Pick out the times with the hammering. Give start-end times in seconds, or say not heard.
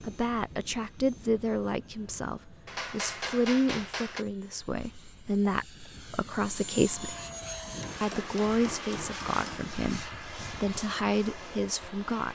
2.6-4.2, 7.8-9.8.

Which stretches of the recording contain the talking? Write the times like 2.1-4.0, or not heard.
0.0-7.2, 8.0-12.2.